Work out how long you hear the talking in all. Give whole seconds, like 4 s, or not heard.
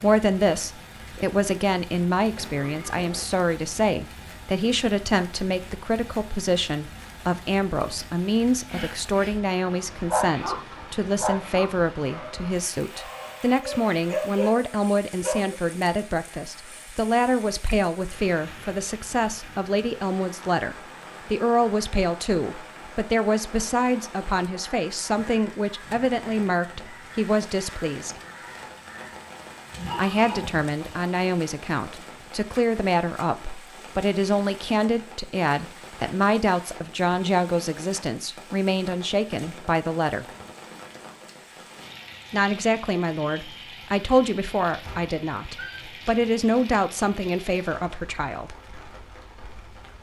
45 s.